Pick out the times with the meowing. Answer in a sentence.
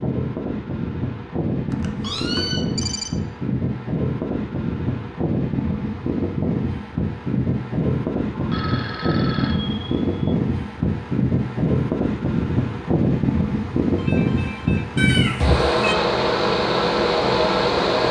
The meowing can be heard from 2.0 to 2.6 s and from 14.9 to 15.9 s.